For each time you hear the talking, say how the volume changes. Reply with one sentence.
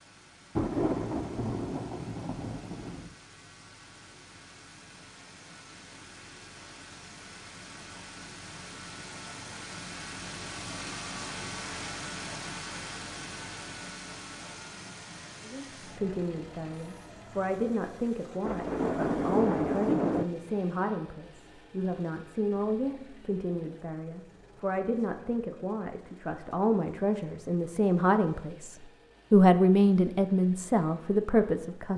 The talking can be heard from 15.4 to 31.9 s, getting louder.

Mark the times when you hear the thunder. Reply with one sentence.
You can hear the thunder from 0.6 to 3.1 s and from 18.4 to 20.2 s.